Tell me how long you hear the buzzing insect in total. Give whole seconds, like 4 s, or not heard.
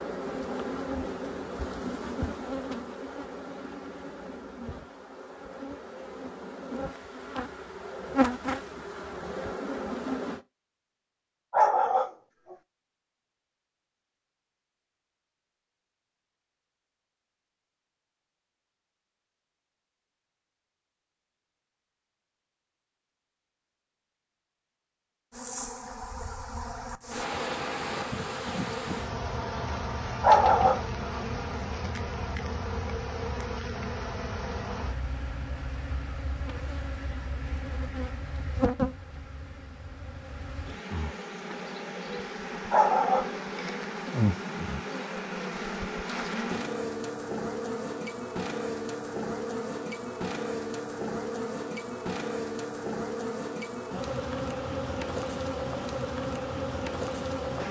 43 s.